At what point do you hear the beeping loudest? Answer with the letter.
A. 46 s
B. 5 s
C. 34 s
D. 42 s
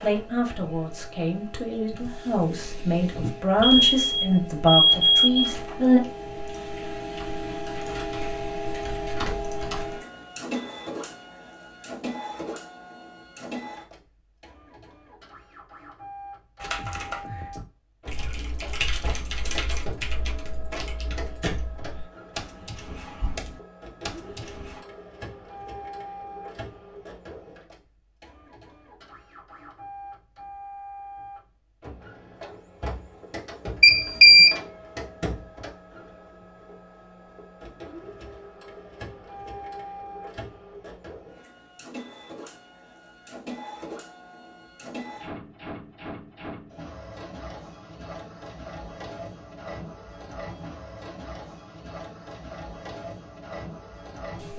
C.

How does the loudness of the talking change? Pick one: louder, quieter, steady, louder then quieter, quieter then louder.
louder.